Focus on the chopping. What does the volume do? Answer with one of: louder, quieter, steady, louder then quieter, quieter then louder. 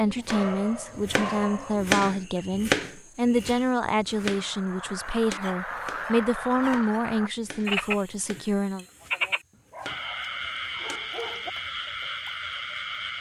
quieter.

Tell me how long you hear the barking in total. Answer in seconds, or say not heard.
5 s.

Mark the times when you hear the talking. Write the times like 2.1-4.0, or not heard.
0.0-8.8.